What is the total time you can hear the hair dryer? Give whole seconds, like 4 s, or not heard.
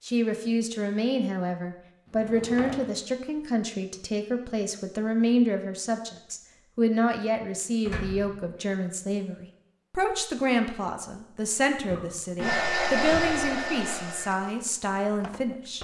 3 s.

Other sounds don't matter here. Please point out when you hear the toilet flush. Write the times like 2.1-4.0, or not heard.
not heard.